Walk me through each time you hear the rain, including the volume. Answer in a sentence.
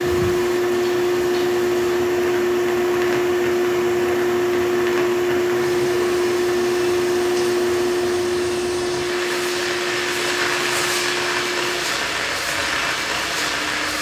The rain can be heard from 0.0 to 13.9 s, getting louder.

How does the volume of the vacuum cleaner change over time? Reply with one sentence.
The volume of the vacuum cleaner goes down.